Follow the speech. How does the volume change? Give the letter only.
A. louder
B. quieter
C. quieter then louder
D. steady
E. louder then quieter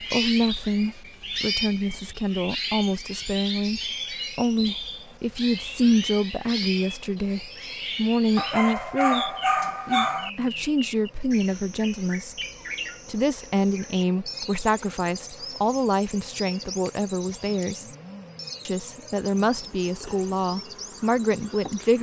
D.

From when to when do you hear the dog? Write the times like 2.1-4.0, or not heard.
8.3-10.3.